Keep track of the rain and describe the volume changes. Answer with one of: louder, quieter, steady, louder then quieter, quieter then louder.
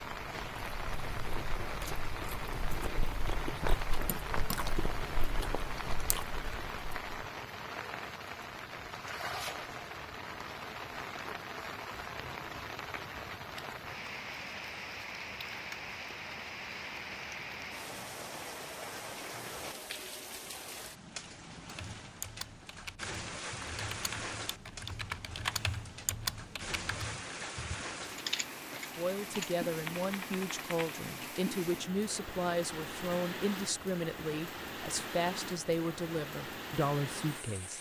steady.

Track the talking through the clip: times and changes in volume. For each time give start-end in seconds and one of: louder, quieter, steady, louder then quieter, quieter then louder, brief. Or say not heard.
28.9-37.7 steady.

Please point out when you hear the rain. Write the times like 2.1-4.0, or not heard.
0.0-37.7.